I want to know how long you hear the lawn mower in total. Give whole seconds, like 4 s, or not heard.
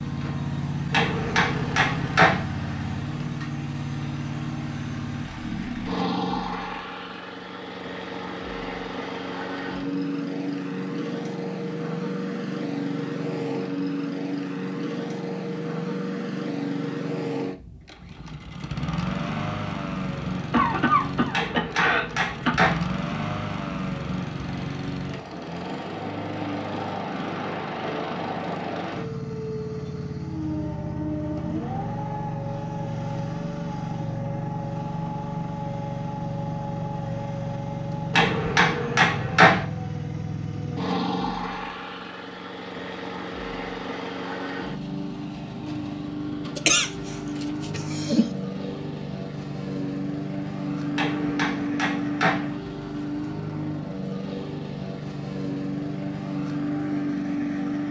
58 s.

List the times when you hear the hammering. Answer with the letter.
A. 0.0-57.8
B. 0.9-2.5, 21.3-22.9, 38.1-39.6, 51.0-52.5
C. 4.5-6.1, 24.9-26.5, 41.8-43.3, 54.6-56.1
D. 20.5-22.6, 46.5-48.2
B.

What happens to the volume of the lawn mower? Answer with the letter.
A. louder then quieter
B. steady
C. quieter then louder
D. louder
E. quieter
B.